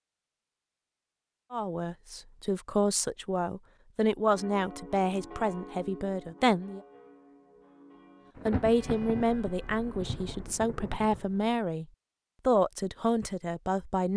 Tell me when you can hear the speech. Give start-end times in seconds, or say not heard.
1.5-6.8, 8.4-11.8, 12.4-14.1.